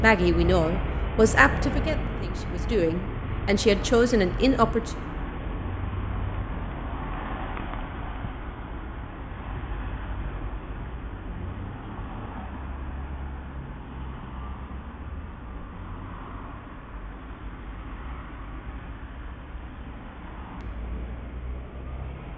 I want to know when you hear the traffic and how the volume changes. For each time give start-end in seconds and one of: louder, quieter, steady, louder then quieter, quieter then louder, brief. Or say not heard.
0.0-22.3 quieter.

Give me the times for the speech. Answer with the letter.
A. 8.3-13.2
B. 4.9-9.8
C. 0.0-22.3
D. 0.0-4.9
D.